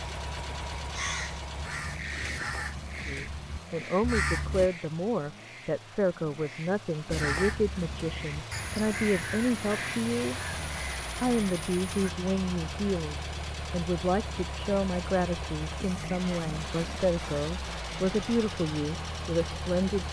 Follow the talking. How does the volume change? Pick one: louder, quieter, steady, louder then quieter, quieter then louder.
steady.